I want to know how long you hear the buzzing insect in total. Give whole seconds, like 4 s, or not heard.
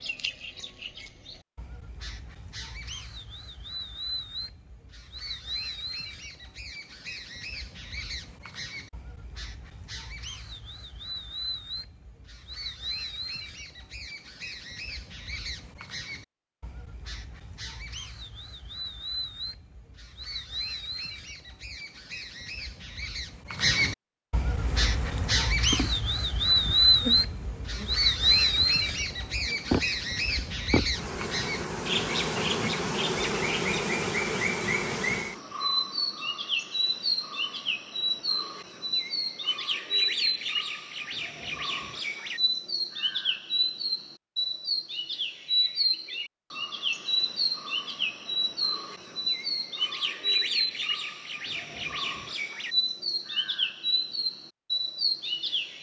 11 s.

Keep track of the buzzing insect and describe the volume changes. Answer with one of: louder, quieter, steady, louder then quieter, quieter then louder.
louder.